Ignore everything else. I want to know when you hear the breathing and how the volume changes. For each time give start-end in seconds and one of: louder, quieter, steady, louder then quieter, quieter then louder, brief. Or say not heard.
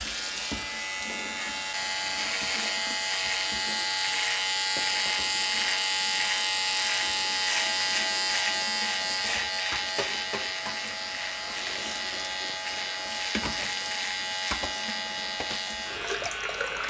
not heard.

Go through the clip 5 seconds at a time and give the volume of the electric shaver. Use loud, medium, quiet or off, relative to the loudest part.
loud, loud, medium, medium.